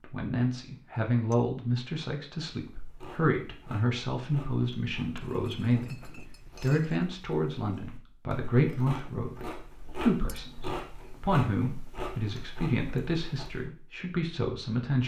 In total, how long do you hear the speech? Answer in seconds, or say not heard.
15 s.